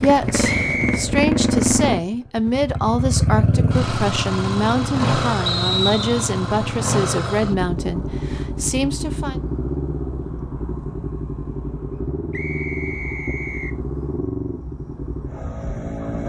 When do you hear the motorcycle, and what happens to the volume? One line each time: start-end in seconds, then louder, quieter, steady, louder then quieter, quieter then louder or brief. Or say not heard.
0.0-16.2 quieter.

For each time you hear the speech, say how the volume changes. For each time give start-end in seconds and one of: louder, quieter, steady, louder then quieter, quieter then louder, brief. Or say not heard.
0.0-9.4 steady.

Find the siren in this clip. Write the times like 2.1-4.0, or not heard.
not heard.